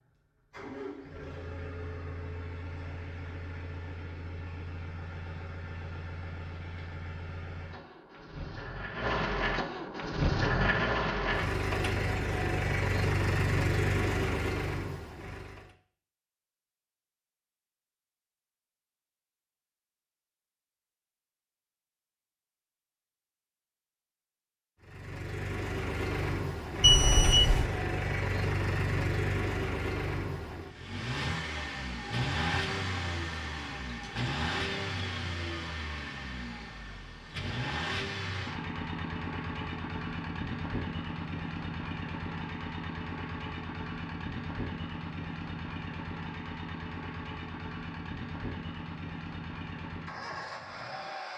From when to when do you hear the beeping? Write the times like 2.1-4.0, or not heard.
26.8-27.6.